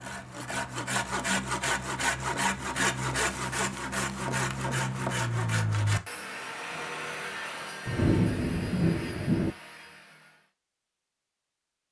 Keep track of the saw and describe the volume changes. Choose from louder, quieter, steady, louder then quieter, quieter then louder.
quieter.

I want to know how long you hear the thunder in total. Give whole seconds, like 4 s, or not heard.
2 s.